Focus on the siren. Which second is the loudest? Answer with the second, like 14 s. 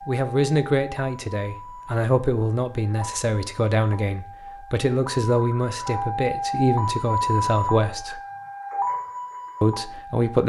7 s.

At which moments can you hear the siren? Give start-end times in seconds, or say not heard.
0.0-10.4.